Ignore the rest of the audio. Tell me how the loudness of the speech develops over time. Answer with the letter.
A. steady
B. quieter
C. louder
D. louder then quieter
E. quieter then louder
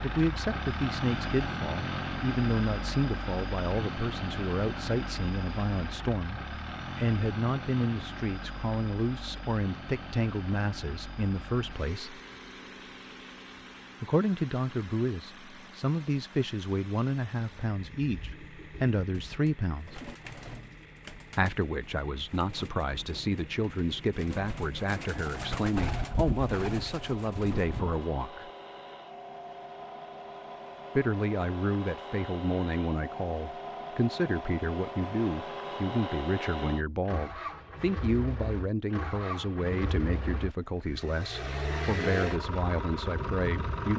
A.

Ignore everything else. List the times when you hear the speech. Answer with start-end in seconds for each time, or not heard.
0.0-12.2, 14.0-20.0, 21.4-28.5, 30.9-43.9.